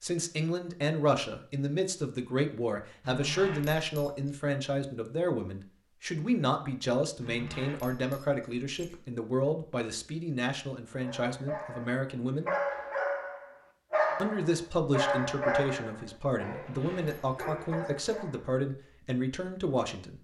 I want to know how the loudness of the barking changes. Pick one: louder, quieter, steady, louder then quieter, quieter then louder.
quieter.